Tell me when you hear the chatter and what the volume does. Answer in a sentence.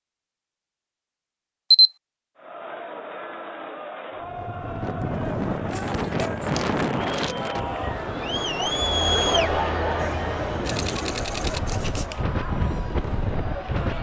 You can hear the chatter from 2.4 to 13.9 s, getting louder then quieter.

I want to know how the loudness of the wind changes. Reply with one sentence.
The volume of the wind goes down, then up.